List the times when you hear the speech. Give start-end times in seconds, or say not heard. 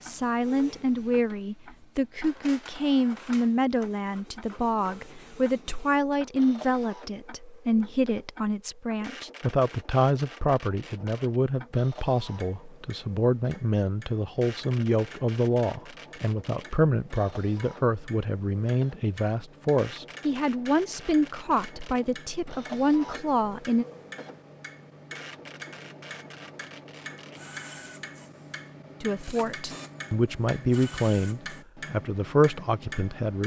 0.0-23.9, 29.0-33.4.